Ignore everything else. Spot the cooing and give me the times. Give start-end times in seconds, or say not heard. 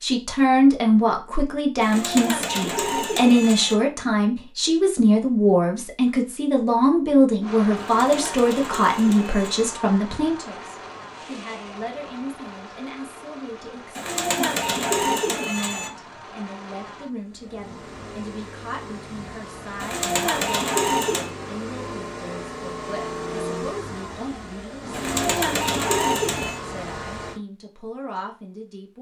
1.8-3.8, 7.8-9.7, 13.9-15.9, 19.8-21.3, 24.9-26.6.